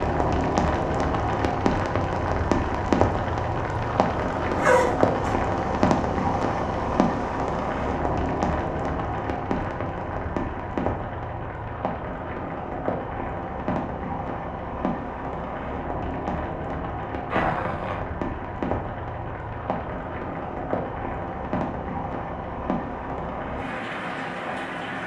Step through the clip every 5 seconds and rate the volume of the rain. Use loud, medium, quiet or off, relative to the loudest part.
loud, loud, medium, medium, medium.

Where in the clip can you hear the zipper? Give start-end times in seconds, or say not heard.
4.5-5.3, 17.3-18.0.